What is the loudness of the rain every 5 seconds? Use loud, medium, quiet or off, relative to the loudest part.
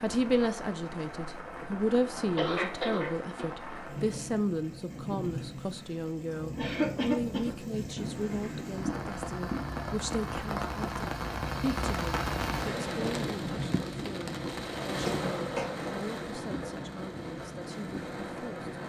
medium, loud, loud, loud.